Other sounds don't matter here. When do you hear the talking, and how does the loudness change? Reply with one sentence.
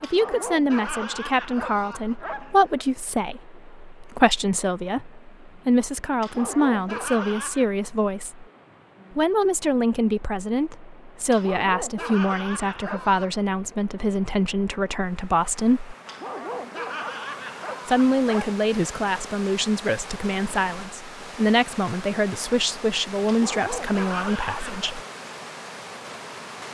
You can hear the talking from 0.0 to 8.4 s, at a steady volume; from 9.2 to 15.9 s, at a steady volume; and from 17.9 to 25.0 s, at a steady volume.